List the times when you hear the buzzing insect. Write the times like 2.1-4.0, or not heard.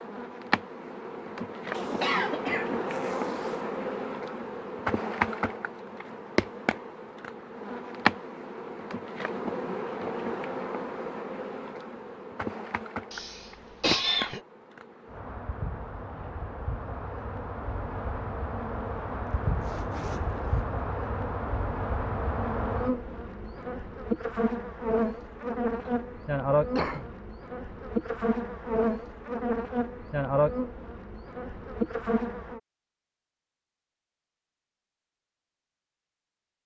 0.0-32.6.